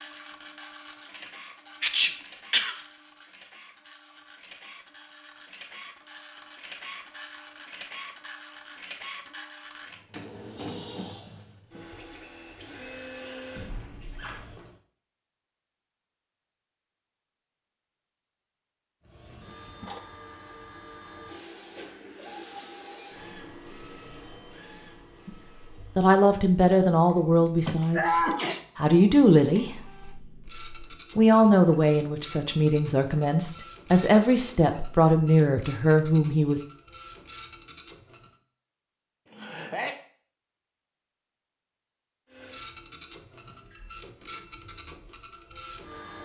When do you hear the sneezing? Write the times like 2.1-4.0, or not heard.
1.8-2.8, 27.1-28.6, 39.2-40.0.